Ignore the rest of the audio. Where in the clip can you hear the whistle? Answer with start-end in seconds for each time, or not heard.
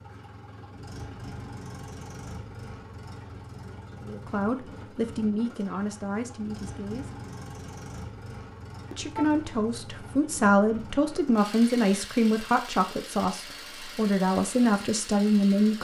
not heard.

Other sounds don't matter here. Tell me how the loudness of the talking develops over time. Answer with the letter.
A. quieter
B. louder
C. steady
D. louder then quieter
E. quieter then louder
B.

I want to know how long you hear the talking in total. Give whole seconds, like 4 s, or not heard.
10 s.